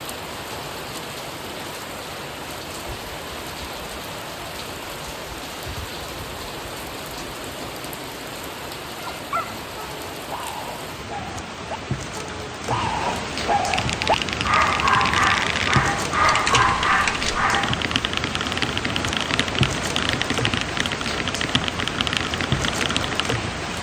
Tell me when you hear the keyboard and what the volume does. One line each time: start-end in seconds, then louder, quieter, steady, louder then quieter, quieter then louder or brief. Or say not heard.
13.7-23.4 steady.